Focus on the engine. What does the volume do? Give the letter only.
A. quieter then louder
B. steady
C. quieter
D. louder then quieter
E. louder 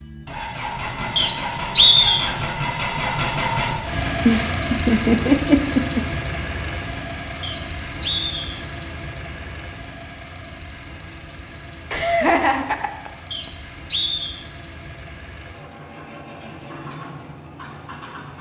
C.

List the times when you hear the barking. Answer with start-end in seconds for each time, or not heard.
not heard.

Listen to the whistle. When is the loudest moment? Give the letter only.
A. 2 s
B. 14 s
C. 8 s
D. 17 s
A.